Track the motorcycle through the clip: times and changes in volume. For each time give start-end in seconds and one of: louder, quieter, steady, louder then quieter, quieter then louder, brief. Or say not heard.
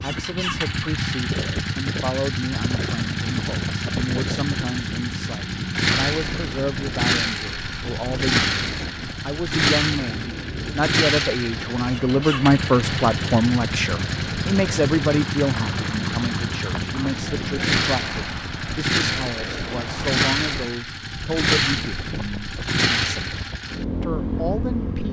0.0-25.0 steady.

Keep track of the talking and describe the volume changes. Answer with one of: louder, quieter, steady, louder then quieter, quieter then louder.
louder then quieter.